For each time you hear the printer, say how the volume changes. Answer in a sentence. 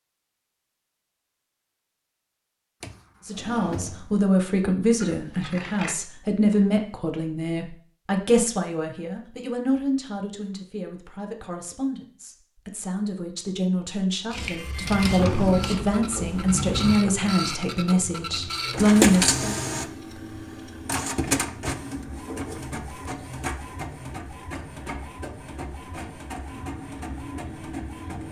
The printer can be heard from 14.3 to 28.2 s, getting louder then quieter.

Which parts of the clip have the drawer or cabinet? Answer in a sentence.
The drawer or cabinet can be heard from 2.8 to 4.2 s and from 14.8 to 17.0 s.